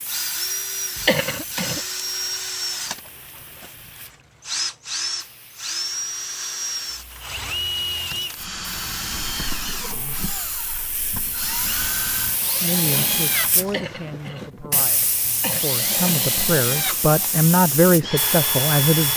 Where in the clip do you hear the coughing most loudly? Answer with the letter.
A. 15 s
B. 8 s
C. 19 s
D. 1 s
D.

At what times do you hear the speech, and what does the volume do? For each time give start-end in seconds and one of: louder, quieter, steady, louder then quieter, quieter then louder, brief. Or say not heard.
12.5-19.1 quieter then louder.